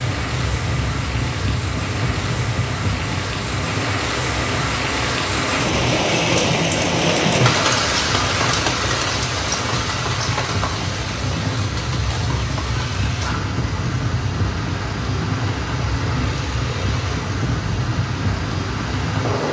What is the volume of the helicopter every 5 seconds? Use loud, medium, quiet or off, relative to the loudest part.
loud, medium, loud, loud.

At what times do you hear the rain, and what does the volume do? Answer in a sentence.
You can hear the rain from 0.0 to 19.4 s, getting louder then quieter.